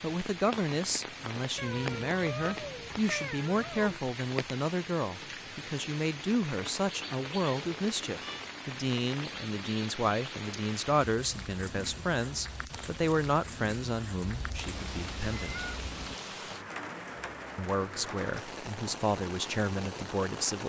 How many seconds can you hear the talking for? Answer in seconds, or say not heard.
19 s.